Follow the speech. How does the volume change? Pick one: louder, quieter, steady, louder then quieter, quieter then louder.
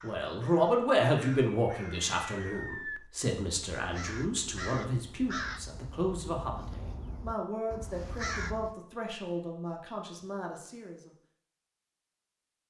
quieter.